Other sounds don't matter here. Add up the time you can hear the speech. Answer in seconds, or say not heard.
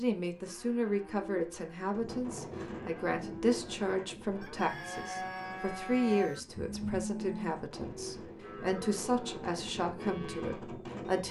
11 s.